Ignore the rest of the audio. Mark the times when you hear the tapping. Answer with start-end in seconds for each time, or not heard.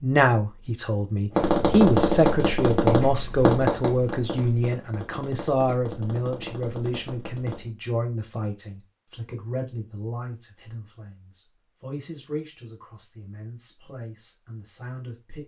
1.3-7.7.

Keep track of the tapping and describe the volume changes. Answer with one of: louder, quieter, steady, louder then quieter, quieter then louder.
quieter.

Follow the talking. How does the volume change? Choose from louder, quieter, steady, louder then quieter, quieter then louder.
quieter.